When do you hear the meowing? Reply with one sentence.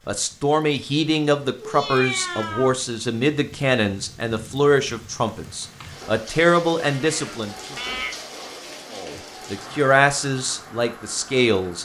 The meowing can be heard from 1.6 to 2.8 s and from 6.8 to 8.2 s.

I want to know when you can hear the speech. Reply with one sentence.
You can hear the speech from 0.1 to 7.8 s and from 8.9 to 11.7 s.